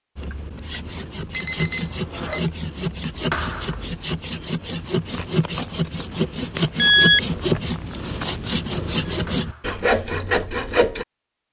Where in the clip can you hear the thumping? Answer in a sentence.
The thumping can be heard from 3.3 to 3.9 s and from 9.2 to 9.8 s.